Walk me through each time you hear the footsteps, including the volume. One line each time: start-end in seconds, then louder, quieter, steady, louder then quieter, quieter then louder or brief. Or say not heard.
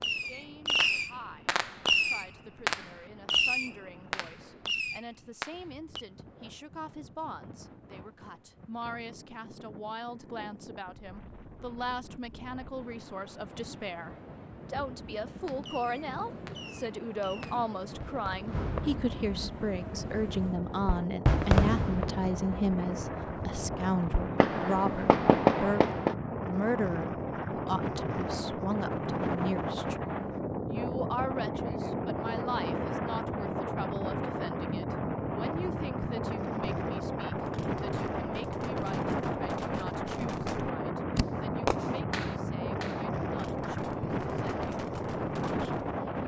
not heard.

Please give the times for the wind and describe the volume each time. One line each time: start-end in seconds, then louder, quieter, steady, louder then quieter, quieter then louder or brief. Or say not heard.
0.0-46.2 louder.